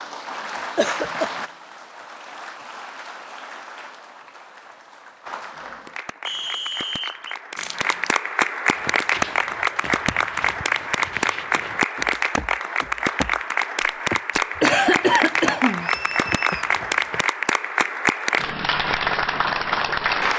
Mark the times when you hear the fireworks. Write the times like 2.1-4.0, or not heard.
not heard.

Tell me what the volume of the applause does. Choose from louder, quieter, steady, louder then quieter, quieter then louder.
louder.